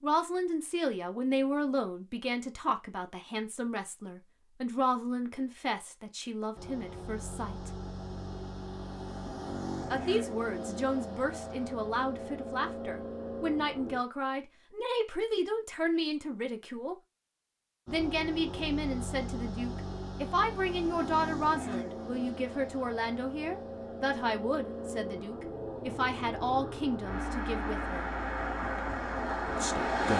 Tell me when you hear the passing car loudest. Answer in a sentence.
The volume of the passing car peaks at 30 seconds.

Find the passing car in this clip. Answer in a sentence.
The passing car can be heard from 6.5 to 14.0 s and from 17.9 to 30.1 s.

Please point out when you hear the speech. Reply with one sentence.
You can hear the speech from 0.0 to 7.7 s, from 9.9 to 16.9 s, from 17.9 to 28.1 s and from 29.4 to 30.1 s.